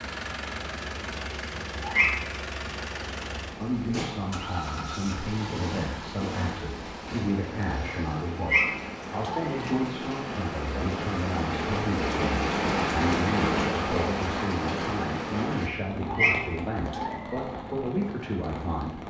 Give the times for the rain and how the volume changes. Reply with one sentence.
The rain can be heard from 0.0 to 19.0 s, getting louder then quieter.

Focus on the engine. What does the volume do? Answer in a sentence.
The loudness of the engine stays about the same.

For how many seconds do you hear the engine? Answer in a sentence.
You can hear the engine for 8 seconds altogether.